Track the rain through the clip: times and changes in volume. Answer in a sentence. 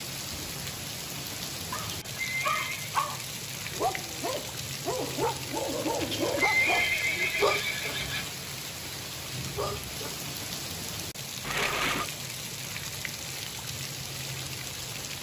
You can hear the rain from 0.0 to 15.1 s, at a steady volume.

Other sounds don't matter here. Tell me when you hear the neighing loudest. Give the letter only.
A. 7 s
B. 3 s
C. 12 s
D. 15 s
A.